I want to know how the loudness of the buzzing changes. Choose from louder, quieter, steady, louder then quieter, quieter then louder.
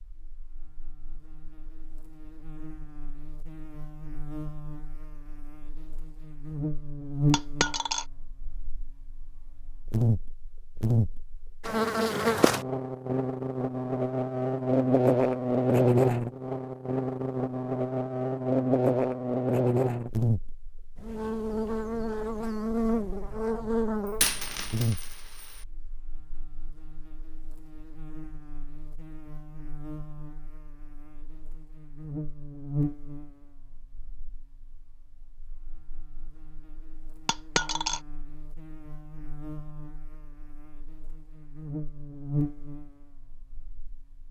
louder then quieter.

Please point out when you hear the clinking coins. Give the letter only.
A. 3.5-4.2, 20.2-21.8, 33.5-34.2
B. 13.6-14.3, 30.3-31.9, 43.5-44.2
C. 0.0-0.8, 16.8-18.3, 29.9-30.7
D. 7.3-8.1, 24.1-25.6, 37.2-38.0
D.